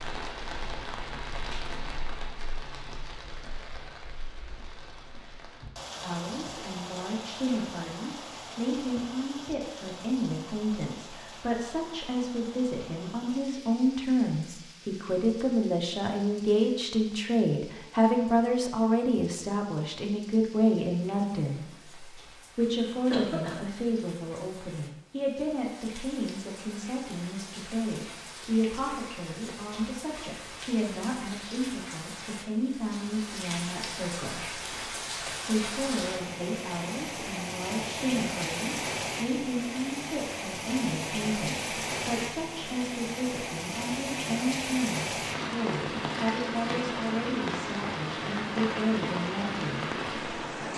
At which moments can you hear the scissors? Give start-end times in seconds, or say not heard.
not heard.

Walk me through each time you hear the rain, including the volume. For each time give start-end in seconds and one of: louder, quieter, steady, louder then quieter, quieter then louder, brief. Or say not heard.
0.0-50.7 quieter then louder.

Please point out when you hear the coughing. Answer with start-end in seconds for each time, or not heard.
23.1-23.6.